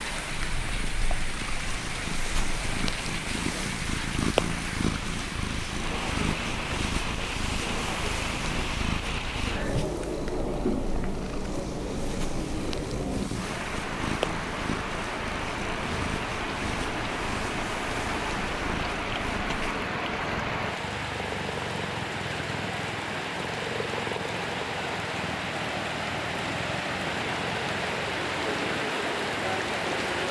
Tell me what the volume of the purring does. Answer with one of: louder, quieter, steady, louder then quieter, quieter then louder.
quieter.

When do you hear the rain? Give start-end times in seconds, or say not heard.
0.0-30.2.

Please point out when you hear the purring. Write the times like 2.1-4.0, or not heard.
0.0-30.2.